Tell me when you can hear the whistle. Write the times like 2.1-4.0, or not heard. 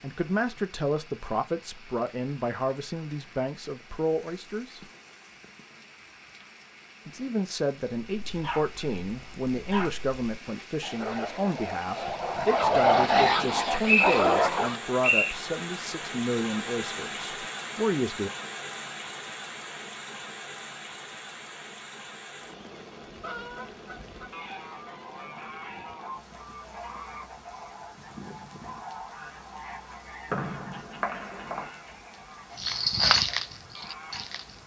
13.8-15.3, 30.3-31.6.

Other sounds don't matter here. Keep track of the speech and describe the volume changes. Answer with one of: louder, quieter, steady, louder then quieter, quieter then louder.
steady.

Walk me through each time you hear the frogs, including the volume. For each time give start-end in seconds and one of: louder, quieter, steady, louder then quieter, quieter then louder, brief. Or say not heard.
not heard.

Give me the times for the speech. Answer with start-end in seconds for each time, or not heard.
0.0-4.8, 7.0-18.3.